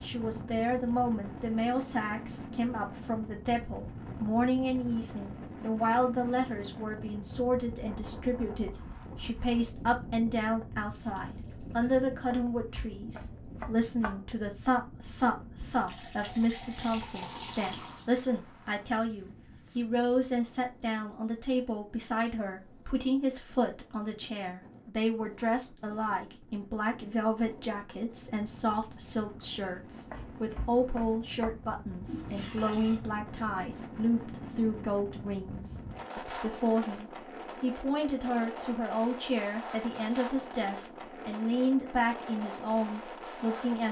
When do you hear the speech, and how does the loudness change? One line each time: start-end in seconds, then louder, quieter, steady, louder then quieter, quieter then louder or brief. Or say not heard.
0.0-43.8 steady.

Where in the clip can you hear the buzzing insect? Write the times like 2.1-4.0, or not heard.
not heard.